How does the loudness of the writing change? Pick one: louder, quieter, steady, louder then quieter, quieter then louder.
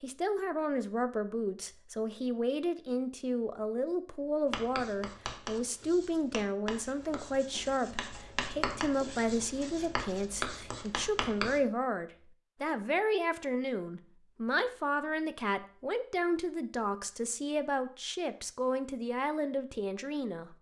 louder.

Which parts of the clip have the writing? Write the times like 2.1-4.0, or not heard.
4.5-11.6.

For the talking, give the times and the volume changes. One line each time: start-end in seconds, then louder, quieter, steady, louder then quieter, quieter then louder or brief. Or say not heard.
0.0-20.5 steady.